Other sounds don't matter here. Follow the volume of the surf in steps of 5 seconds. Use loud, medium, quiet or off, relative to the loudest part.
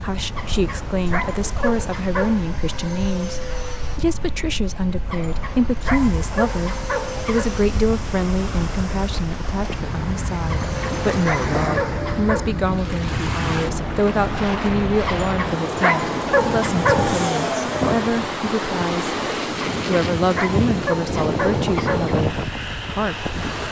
quiet, medium, loud, loud, loud.